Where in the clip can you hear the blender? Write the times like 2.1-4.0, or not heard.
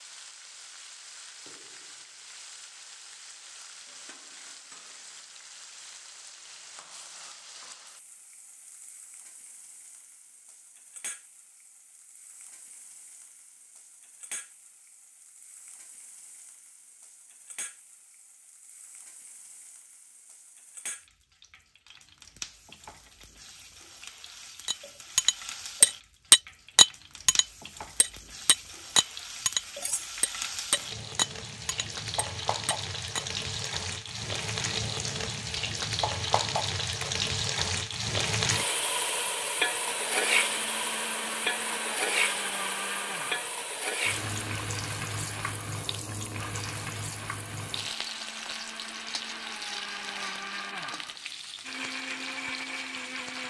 39.9-53.4.